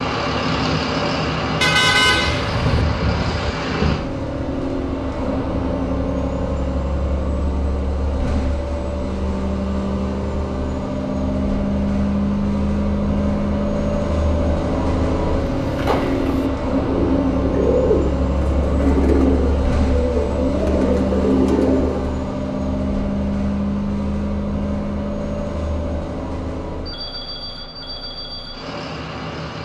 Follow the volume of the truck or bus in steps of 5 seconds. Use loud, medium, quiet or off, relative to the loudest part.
loud, loud, loud, loud, loud, medium.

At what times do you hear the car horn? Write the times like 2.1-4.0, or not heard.
1.6-2.9.